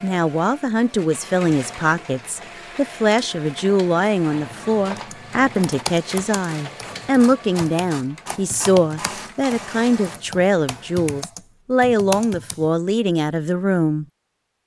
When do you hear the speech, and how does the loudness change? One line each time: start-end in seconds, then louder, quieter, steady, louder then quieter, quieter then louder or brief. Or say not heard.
0.0-14.1 steady.